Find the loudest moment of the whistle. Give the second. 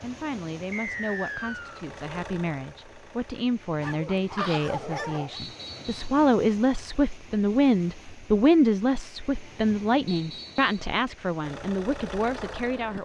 1 s.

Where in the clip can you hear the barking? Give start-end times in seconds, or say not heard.
3.8-5.4.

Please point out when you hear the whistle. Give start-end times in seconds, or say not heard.
0.7-1.9, 5.3-6.0, 10.1-10.8.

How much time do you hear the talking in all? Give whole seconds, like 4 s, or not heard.
13 s.